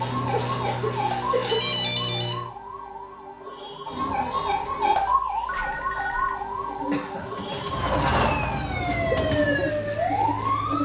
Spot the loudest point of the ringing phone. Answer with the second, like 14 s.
2 s.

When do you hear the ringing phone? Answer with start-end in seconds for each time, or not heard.
1.4-2.4, 5.5-6.3.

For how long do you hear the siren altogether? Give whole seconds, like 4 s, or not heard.
11 s.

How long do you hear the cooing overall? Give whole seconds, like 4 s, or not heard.
4 s.